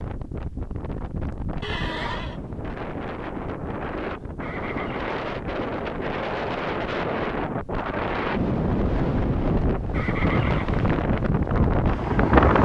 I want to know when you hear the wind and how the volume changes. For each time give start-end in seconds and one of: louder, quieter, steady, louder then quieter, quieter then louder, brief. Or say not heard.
0.0-12.5 louder.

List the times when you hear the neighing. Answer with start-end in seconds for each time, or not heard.
1.6-2.4, 4.4-5.2, 9.9-11.1.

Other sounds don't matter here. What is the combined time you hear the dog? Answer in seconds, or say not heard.
not heard.